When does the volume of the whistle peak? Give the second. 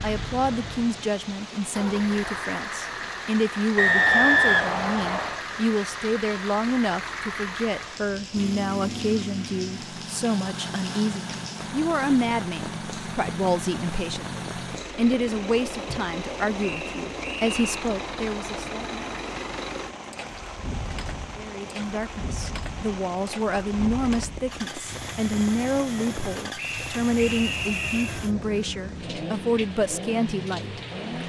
4 s.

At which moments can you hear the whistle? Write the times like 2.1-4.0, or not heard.
3.8-5.4, 16.6-17.9, 26.6-28.2.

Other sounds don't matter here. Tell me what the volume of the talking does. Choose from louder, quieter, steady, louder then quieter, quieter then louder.
steady.